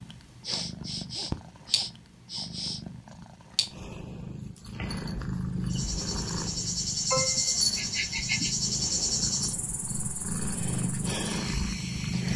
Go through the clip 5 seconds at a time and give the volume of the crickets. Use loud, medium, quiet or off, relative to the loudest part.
off, loud, medium.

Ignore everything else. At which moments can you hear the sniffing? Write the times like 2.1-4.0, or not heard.
0.5-2.8, 7.1-8.6.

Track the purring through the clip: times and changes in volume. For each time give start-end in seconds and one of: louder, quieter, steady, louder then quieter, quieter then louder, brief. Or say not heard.
0.0-12.3 louder.